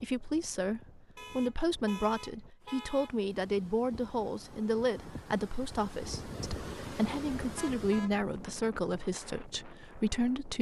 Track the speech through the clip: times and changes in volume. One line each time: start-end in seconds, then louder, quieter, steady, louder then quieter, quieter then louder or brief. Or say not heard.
0.0-10.5 steady.